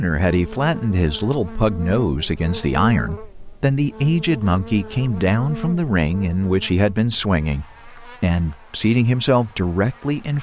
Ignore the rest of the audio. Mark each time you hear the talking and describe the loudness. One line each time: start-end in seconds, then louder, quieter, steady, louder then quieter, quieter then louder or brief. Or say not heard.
0.0-10.3 steady.